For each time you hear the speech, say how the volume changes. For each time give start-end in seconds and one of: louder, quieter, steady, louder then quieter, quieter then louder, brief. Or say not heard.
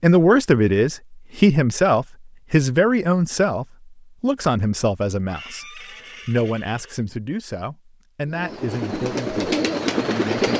0.0-10.5 quieter.